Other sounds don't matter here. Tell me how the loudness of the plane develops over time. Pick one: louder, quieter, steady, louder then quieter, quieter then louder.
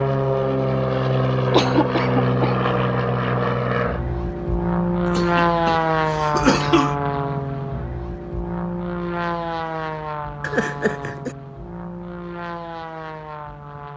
quieter.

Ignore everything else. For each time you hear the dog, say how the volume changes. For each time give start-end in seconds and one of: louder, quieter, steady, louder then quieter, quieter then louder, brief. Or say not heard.
not heard.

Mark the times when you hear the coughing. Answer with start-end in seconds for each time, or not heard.
1.5-2.6, 5.0-7.0, 10.4-11.3.